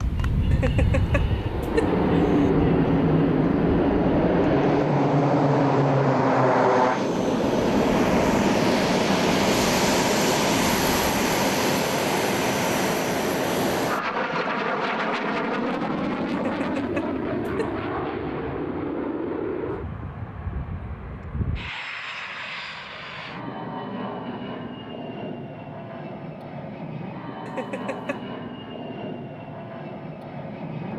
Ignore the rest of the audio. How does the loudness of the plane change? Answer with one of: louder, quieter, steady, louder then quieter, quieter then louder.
quieter.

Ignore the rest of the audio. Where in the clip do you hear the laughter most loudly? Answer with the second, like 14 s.
2 s.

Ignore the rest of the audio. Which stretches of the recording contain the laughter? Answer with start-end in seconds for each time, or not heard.
0.5-2.5, 16.3-17.8, 27.4-28.2.